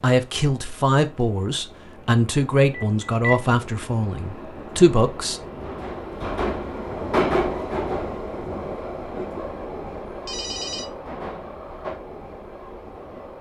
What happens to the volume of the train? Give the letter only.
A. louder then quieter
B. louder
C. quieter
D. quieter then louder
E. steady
A.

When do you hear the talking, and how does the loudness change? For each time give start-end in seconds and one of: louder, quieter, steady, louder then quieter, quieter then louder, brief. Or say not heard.
0.0-5.4 steady.